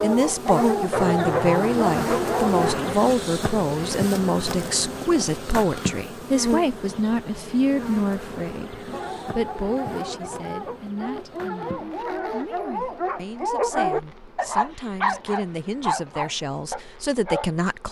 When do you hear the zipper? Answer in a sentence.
The zipper can be heard from 0.9 to 3.0 s.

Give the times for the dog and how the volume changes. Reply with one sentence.
The dog can be heard briefly from 0.0 to 2.8 s; and from 8.9 to 17.5 s, getting louder.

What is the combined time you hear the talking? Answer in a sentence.
The talking can be heard for 18 seconds in total.